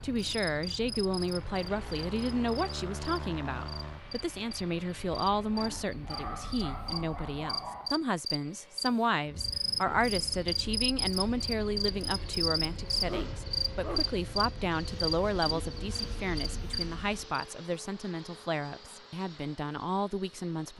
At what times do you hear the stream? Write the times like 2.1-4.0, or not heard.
not heard.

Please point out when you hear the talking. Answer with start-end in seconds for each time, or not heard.
0.0-20.7.